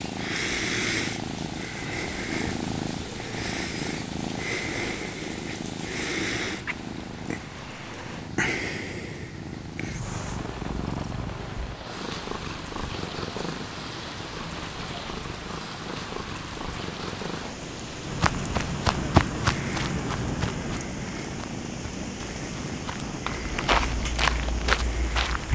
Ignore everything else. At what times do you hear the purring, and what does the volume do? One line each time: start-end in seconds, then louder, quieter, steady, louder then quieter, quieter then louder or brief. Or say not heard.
0.0-25.4 quieter.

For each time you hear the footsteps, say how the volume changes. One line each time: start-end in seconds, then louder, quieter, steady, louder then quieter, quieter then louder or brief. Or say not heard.
18.1-25.4 quieter then louder.